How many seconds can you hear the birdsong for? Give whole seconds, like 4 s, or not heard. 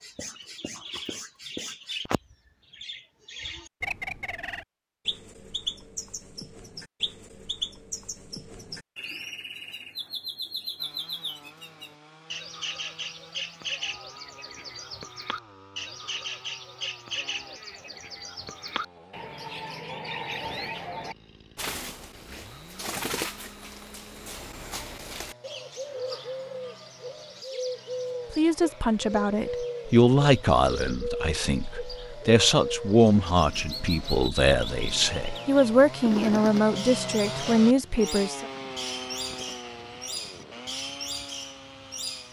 42 s.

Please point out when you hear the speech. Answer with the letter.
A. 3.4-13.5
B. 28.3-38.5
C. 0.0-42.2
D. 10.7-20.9
B.